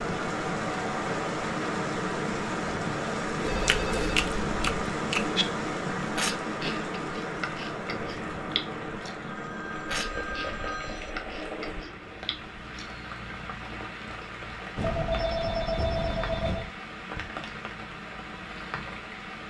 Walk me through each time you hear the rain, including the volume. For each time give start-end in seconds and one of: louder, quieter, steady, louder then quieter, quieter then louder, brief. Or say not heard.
0.0-19.4 quieter.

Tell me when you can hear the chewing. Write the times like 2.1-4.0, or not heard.
3.5-5.5, 6.2-13.0.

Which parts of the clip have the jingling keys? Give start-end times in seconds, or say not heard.
not heard.